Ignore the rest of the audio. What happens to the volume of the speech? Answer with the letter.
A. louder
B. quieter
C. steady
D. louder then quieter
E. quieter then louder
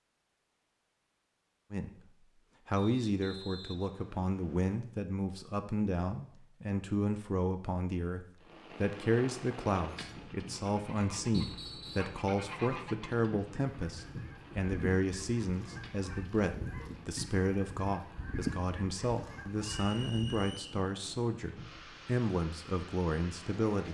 C.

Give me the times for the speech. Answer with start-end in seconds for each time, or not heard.
1.7-23.8.